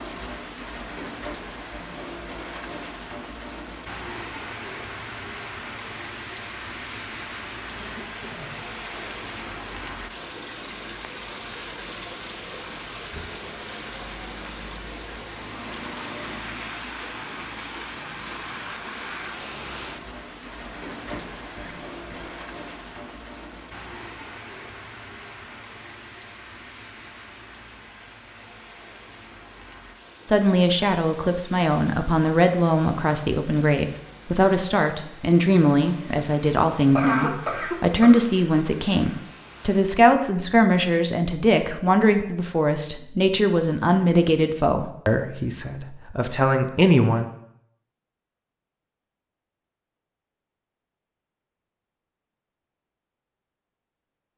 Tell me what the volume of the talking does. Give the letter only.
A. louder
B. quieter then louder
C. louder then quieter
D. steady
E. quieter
D.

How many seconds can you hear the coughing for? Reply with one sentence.
You can hear the coughing for 3 seconds altogether.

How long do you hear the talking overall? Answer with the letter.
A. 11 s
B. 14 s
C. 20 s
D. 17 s
D.